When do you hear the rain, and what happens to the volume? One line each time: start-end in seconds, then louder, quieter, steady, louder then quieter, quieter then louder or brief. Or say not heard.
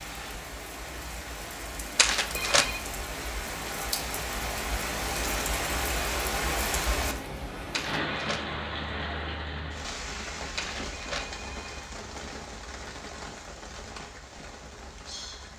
0.0-15.5 louder then quieter.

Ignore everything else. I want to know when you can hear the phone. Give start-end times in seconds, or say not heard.
1.9-2.8, 7.7-8.4, 10.6-11.8.